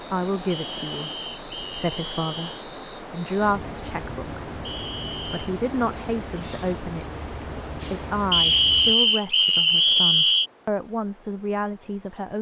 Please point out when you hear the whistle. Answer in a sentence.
You can hear the whistle from 0.5 to 2.6 s, from 4.7 to 5.5 s and from 8.3 to 10.5 s.